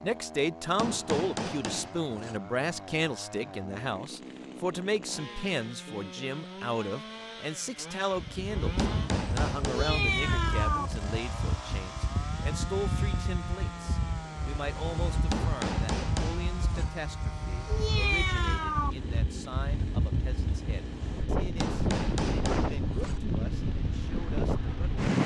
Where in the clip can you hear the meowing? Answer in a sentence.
You can hear the meowing from 9.6 to 10.9 s and from 17.6 to 18.9 s.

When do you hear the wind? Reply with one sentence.
The wind can be heard from 8.2 to 25.2 s.